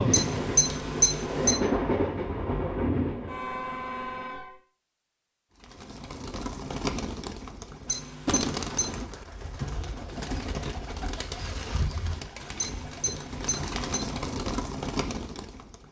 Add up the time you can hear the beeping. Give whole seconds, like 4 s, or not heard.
4 s.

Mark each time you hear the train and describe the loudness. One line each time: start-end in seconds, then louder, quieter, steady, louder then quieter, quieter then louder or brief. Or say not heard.
0.0-4.6 louder then quieter.